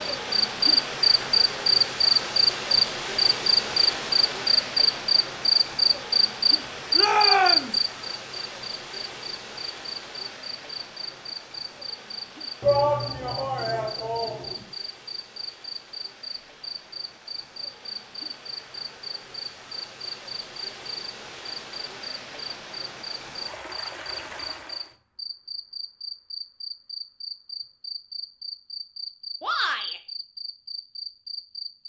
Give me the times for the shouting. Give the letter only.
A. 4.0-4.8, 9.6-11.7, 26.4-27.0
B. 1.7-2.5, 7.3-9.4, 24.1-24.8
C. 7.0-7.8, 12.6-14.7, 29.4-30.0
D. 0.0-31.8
C.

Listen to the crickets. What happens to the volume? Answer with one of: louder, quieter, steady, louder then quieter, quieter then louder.
quieter.